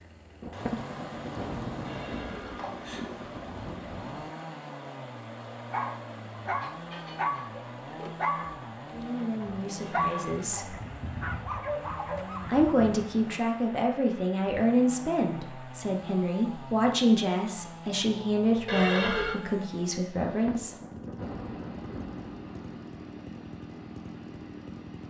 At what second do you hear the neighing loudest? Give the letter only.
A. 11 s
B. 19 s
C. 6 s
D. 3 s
B.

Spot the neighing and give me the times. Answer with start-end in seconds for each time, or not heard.
1.9-3.0, 9.8-10.8, 18.6-19.4.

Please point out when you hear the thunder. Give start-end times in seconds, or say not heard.
0.4-4.3, 20.2-22.9.